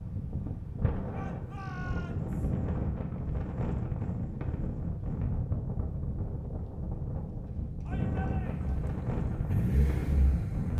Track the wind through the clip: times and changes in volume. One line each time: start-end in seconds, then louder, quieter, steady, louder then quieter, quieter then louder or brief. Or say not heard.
0.0-10.7 steady.